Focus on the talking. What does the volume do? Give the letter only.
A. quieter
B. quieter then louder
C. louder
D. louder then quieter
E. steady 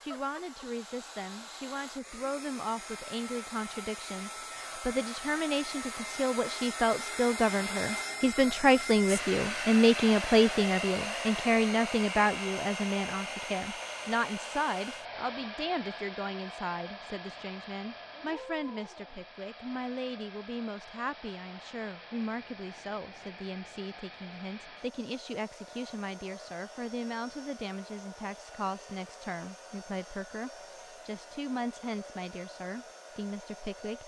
D.